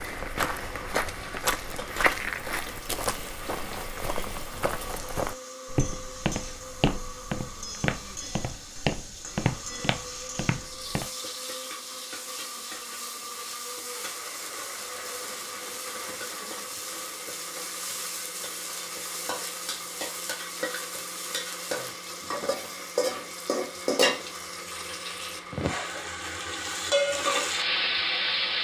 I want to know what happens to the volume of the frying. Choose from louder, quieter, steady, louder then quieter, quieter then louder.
louder.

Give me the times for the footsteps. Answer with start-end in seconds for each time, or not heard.
0.0-11.1.